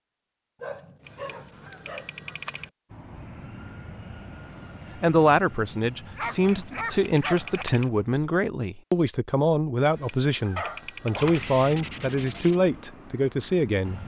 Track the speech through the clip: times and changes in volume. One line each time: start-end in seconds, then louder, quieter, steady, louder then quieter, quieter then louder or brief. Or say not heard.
5.0-14.0 steady.